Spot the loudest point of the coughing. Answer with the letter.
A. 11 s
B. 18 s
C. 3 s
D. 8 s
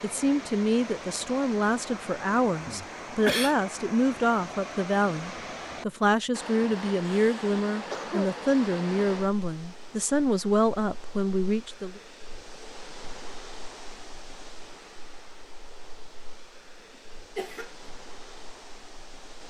C.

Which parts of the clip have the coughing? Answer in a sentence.
The coughing can be heard from 2.6 to 3.5 s, from 6.5 to 8.3 s and from 17.4 to 17.9 s.